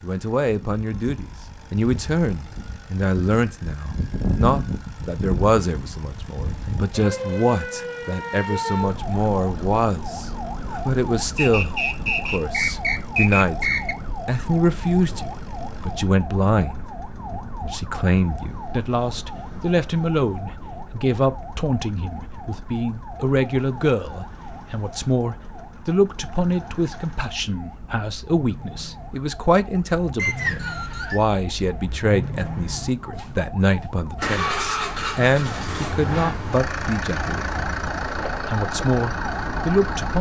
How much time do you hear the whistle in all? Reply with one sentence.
The whistle can be heard for 4 seconds in total.